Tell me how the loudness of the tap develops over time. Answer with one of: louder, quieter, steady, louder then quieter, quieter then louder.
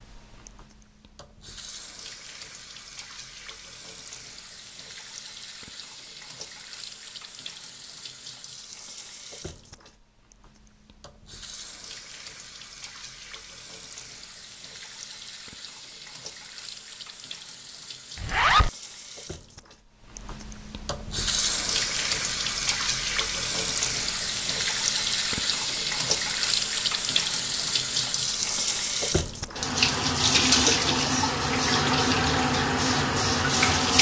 louder.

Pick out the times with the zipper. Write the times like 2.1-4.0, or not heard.
18.1-18.7.